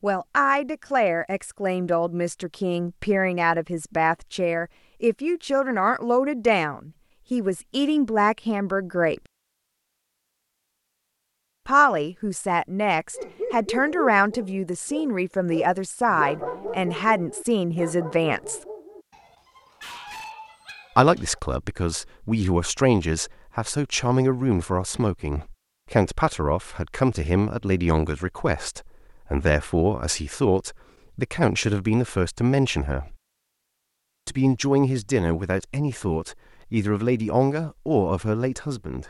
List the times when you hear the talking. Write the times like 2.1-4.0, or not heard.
0.0-9.2, 11.7-18.6, 20.9-33.1, 34.2-39.0.